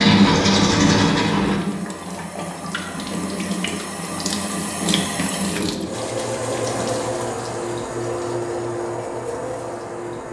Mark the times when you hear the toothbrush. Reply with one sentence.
The toothbrush can be heard from 0.0 to 1.6 s.